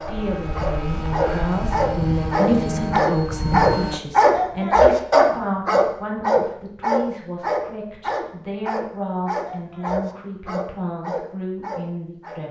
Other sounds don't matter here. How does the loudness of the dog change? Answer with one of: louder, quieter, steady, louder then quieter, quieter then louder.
louder then quieter.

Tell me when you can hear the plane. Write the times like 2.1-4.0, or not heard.
0.0-4.0.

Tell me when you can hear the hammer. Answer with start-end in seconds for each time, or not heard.
not heard.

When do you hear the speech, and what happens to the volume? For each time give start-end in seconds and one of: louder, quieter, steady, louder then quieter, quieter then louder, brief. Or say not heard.
0.1-12.4 quieter.